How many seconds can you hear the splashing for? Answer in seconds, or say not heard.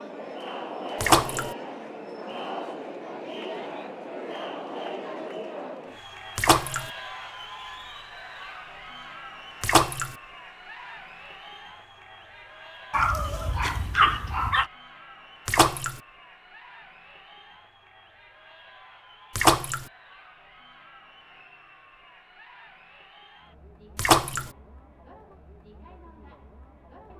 3 s.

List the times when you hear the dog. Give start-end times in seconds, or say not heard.
12.9-14.7.